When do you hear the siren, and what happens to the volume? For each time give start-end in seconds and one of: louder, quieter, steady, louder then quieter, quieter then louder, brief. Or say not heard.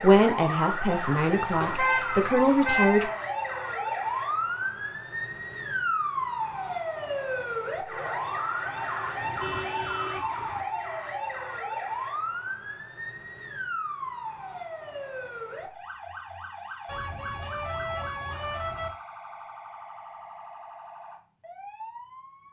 0.0-22.4 quieter.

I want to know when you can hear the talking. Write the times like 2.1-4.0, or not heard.
0.0-3.1.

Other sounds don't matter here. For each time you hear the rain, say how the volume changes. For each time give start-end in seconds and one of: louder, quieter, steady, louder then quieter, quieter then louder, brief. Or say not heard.
not heard.